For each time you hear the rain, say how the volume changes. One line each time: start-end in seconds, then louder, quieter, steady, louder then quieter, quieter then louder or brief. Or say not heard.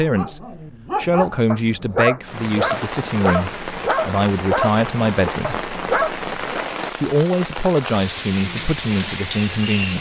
2.2-9.9 steady.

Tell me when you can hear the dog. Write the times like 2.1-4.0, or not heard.
0.0-6.7.